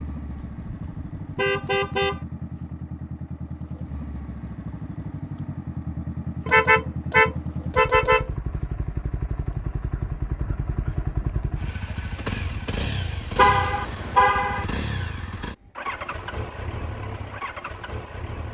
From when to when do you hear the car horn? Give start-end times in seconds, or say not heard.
0.3-2.2, 6.5-8.2, 13.3-14.7.